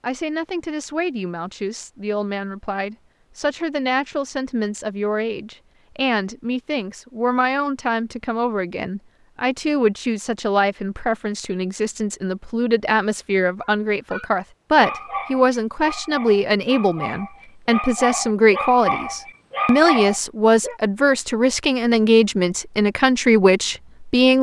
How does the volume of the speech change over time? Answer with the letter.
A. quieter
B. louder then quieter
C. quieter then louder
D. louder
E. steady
D.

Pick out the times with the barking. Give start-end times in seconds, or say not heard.
13.6-20.8.